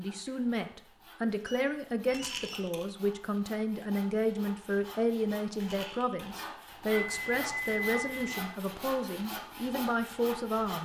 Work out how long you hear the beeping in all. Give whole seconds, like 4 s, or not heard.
3 s.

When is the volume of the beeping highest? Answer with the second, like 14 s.
8 s.